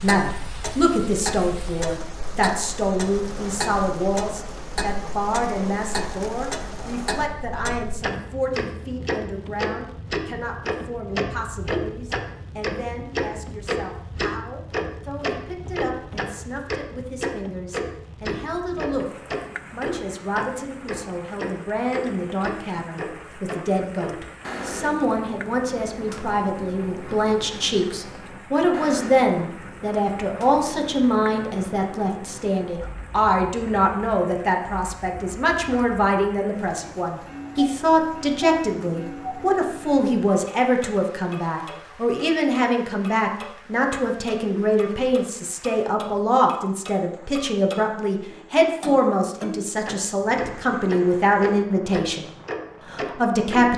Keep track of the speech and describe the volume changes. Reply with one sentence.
The loudness of the speech goes down, then up.